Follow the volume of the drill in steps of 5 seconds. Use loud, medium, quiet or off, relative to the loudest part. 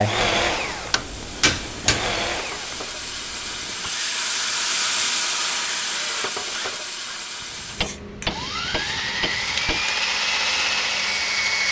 medium, medium, loud.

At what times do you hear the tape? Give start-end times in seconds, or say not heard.
not heard.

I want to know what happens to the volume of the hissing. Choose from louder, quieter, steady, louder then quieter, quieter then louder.
louder then quieter.